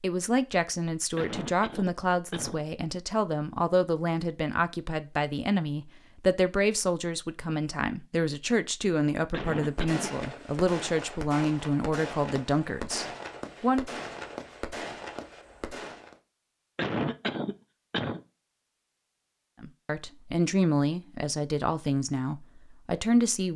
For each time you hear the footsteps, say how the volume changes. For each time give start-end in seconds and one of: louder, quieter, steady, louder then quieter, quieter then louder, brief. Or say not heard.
not heard.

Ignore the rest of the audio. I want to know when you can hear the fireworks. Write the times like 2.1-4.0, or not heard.
9.5-16.1.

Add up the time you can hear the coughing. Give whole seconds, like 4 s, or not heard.
4 s.